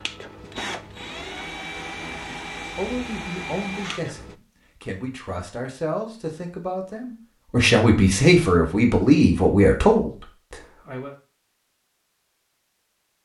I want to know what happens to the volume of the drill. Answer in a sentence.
The volume of the drill stays about the same.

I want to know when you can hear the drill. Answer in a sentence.
You can hear the drill from 0.0 to 4.3 s.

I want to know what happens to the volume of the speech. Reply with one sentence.
The loudness of the speech goes up.